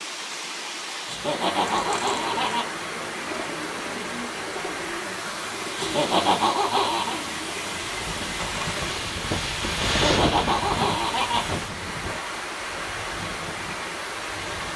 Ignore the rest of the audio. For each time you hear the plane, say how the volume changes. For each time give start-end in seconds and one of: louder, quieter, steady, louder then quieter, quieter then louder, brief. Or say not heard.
7.0-14.7 louder then quieter.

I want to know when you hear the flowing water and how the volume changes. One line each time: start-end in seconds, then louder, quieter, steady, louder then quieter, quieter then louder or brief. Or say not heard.
0.0-14.7 steady.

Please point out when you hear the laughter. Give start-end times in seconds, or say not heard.
1.1-2.6, 5.8-7.2, 9.9-11.4.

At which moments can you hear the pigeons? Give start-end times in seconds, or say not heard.
1.6-9.1.